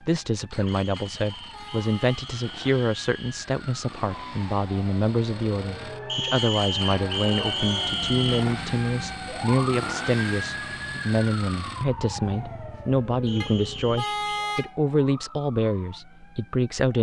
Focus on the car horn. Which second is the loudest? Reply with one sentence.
The loudest moment of the car horn is at 14 seconds.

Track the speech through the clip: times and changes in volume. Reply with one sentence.
You can hear the speech from 0.0 to 16.9 s, at a steady volume.